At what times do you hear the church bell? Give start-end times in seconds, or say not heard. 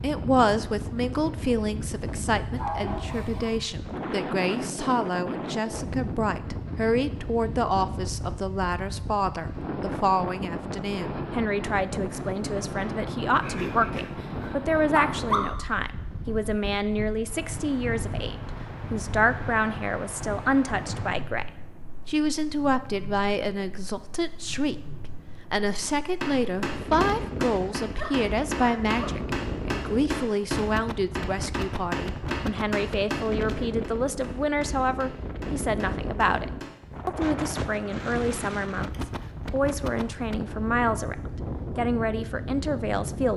not heard.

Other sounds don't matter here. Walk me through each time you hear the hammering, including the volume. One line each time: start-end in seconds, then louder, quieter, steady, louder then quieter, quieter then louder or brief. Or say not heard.
25.8-36.8 quieter.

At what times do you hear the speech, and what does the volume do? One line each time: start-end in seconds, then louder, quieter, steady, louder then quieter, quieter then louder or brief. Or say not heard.
0.0-41.1 steady
41.8-43.3 brief.